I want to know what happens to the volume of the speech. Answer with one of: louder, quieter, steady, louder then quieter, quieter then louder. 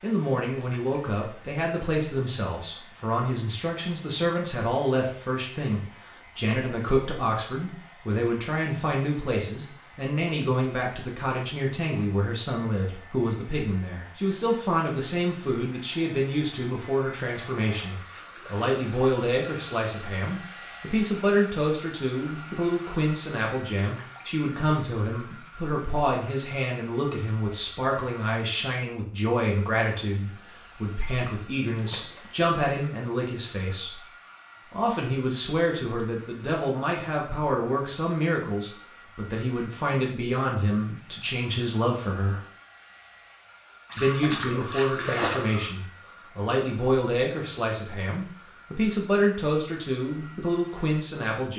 steady.